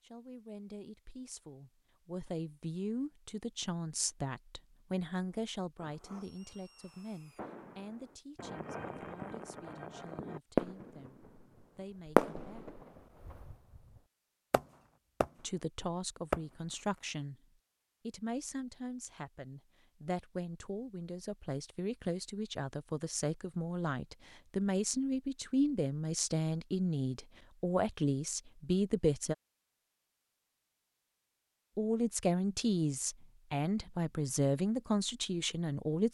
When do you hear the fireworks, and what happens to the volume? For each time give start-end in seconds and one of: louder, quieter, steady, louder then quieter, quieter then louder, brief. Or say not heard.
5.8-11.4 louder
12.1-13.6 brief
14.5-15.3 brief
16.3-17.1 brief.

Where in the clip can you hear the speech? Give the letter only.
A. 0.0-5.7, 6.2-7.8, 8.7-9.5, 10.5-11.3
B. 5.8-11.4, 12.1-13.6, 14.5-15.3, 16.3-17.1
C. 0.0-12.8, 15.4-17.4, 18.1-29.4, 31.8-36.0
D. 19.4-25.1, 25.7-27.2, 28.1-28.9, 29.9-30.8
C.